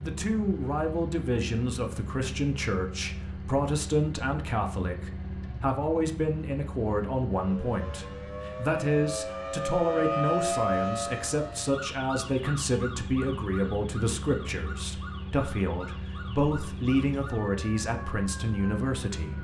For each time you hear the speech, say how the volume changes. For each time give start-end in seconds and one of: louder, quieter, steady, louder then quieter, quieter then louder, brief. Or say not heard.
0.0-19.3 steady.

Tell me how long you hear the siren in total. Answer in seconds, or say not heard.
12 s.